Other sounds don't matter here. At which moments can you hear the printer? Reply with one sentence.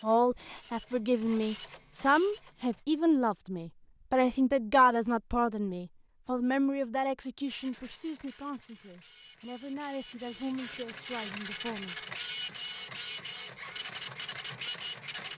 The printer can be heard from 0.0 to 2.8 s and from 7.5 to 15.3 s.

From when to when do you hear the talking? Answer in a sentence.
The talking can be heard from 0.0 to 11.9 s.